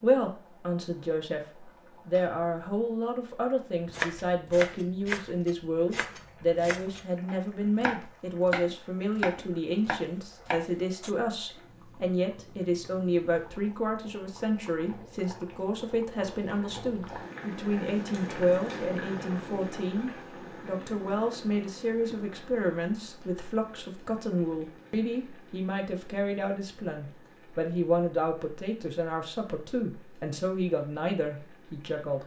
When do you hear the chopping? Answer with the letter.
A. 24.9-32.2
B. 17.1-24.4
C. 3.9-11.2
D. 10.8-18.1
C.